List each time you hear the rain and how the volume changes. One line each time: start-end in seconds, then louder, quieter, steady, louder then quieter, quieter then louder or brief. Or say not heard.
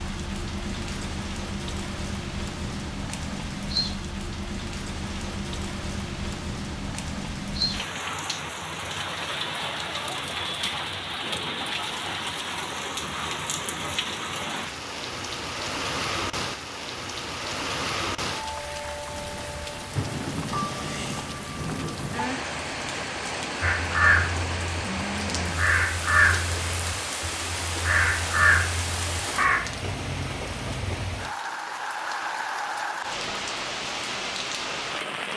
0.0-35.3 steady.